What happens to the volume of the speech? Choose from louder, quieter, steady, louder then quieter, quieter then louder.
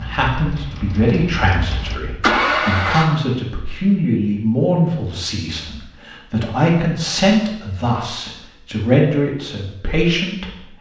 steady.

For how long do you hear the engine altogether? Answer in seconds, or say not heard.
3 s.